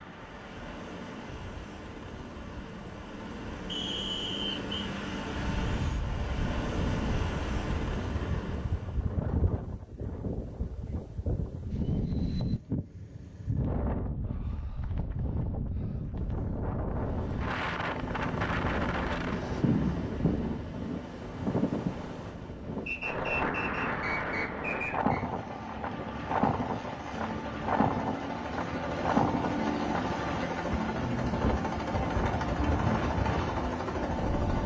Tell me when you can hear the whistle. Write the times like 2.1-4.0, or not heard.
3.6-4.8, 22.9-25.2.